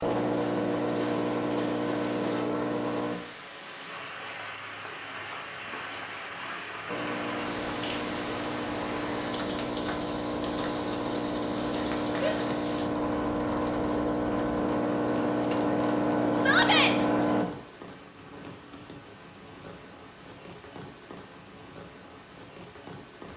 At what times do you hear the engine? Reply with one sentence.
You can hear the engine from 0.0 to 3.2 s and from 6.8 to 17.4 s.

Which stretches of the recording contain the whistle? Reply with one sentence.
You can't hear the whistle here.